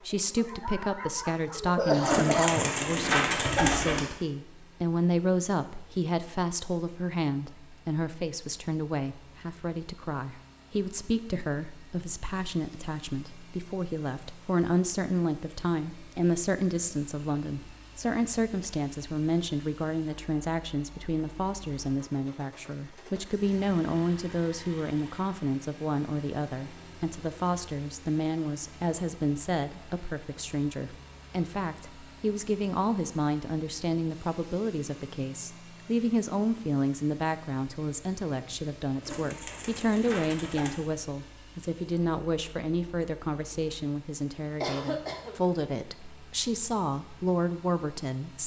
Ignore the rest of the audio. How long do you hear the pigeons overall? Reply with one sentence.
You can hear the pigeons for 4 seconds altogether.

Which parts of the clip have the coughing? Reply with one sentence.
You can hear the coughing from 0.3 to 2.7 s and from 44.6 to 45.4 s.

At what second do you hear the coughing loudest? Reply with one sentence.
The volume of the coughing peaks at 2 seconds.